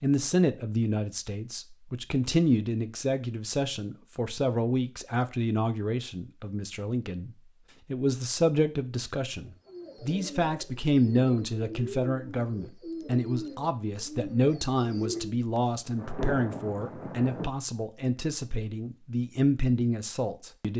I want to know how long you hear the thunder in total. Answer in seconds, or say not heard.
2 s.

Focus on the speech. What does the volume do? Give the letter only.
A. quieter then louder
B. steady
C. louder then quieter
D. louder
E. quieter
B.